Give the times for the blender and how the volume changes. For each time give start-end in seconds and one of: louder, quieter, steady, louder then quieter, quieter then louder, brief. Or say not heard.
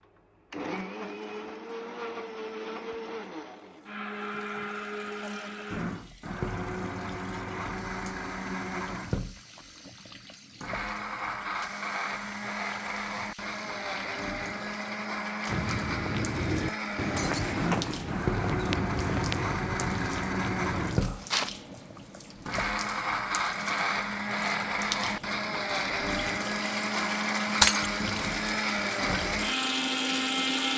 0.0-30.7 louder.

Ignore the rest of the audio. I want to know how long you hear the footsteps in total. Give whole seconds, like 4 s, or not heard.
6 s.